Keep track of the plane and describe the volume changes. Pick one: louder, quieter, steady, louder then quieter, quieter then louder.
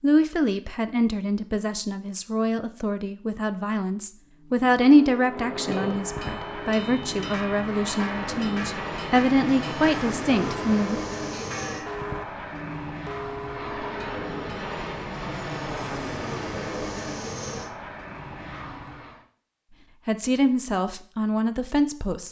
steady.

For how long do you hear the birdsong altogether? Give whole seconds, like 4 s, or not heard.
not heard.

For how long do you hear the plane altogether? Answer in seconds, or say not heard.
14 s.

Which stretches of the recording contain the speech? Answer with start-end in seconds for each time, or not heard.
0.0-11.0, 20.1-22.2.